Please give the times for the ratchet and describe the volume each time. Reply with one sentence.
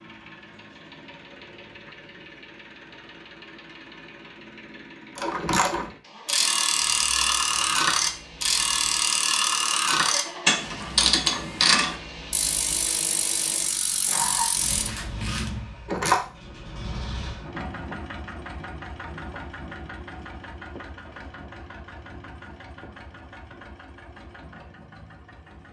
You can hear the ratchet from 5.2 to 16.2 s, getting quieter.